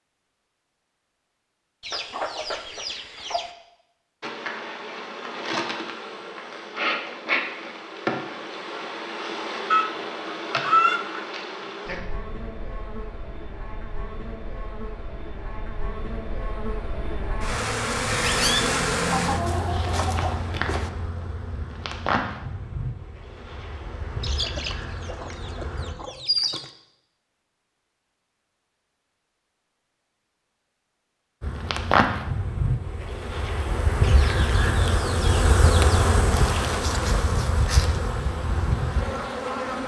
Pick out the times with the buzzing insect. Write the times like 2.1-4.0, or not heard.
4.2-25.9, 31.4-39.8.